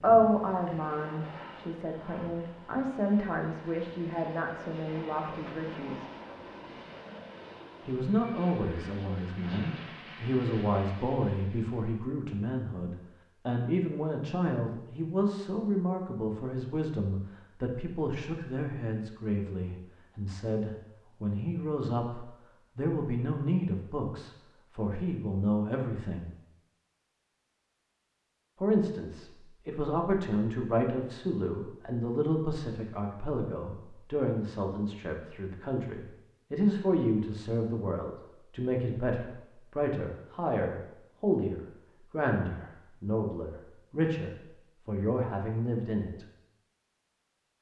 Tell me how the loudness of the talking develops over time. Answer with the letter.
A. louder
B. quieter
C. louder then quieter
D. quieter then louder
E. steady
E.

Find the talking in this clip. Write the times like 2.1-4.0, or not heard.
0.0-6.0, 7.8-26.3, 28.6-46.2.